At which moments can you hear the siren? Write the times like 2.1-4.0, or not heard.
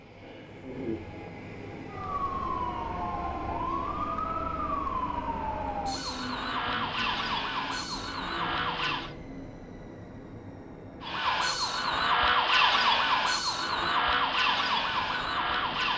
1.9-9.2, 11.0-15.9.